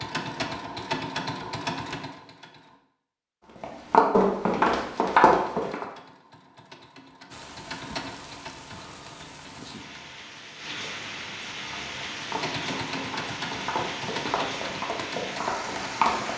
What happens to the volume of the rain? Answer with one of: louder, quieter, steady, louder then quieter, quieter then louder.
louder.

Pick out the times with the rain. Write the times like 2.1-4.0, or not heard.
7.2-16.3.